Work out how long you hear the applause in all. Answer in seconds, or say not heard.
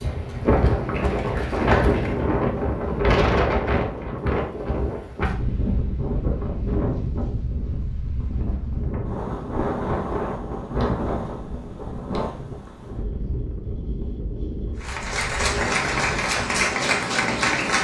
5 s.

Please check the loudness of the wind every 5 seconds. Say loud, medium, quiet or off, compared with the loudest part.
loud, medium, medium, medium.